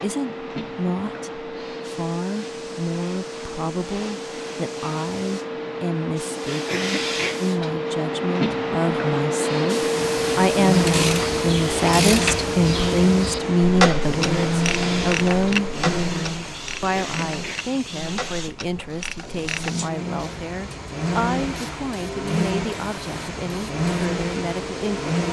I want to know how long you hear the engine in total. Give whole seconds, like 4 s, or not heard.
15 s.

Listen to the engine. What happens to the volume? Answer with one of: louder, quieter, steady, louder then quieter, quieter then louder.
quieter then louder.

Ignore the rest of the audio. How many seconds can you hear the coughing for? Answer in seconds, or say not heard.
2 s.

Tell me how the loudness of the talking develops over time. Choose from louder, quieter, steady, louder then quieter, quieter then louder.
louder then quieter.